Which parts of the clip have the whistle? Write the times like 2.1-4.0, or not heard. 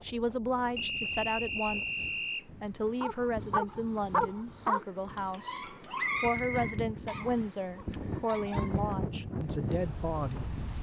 0.8-2.5, 6.0-7.5.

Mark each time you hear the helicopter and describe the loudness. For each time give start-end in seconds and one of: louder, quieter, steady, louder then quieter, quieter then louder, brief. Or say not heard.
not heard.